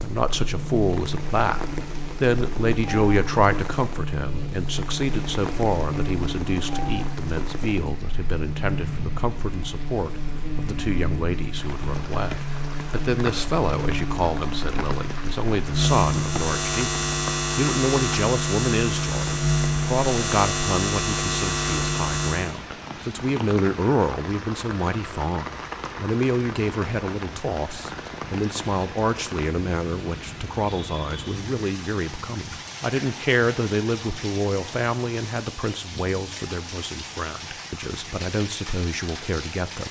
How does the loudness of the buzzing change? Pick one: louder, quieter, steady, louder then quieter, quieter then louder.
louder.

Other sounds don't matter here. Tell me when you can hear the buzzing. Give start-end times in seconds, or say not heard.
0.1-22.6.